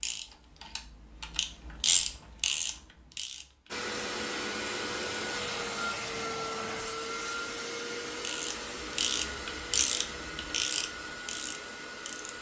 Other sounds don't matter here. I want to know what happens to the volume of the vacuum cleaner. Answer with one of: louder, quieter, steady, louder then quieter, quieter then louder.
quieter.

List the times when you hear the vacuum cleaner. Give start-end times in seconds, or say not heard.
3.7-12.3.